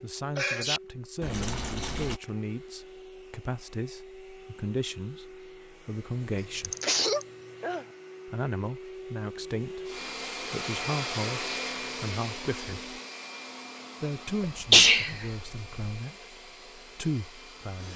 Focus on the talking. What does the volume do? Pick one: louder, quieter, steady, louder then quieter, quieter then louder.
steady.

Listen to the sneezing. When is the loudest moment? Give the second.
15 s.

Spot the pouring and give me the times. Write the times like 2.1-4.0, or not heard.
1.2-2.2.